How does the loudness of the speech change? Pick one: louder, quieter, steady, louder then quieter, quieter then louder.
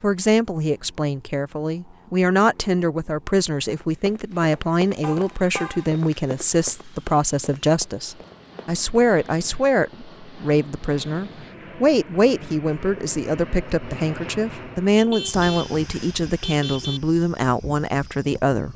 steady.